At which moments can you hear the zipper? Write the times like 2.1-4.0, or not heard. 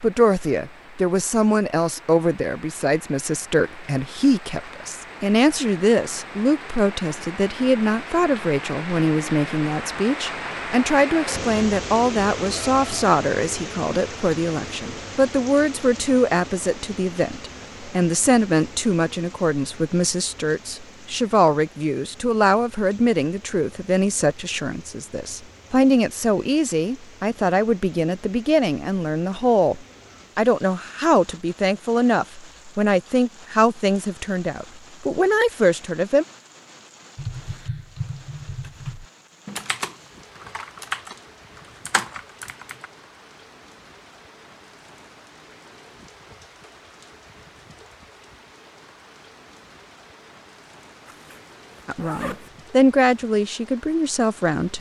51.0-52.5.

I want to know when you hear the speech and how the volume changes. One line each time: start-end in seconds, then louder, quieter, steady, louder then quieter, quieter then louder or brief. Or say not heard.
0.0-36.2 steady
51.9-54.7 brief.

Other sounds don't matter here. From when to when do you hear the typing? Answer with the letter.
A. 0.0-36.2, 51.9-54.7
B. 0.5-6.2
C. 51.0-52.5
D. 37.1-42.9
D.